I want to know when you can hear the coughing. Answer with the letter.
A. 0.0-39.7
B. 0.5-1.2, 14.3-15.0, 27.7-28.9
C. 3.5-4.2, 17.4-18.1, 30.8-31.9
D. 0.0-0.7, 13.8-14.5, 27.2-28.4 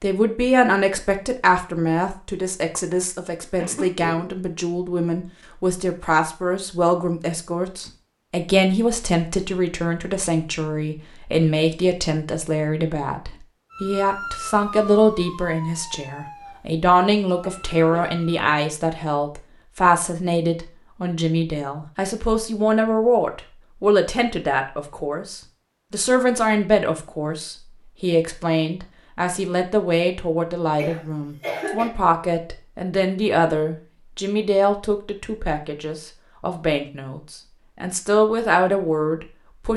C.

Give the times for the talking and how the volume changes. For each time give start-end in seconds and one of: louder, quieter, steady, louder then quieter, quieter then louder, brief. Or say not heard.
0.0-39.7 steady.